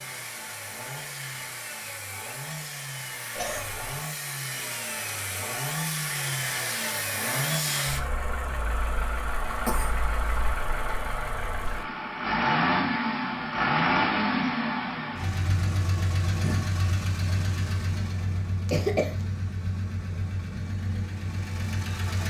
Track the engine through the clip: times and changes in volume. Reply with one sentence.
The engine can be heard from 0.0 to 22.2 s, getting louder then quieter.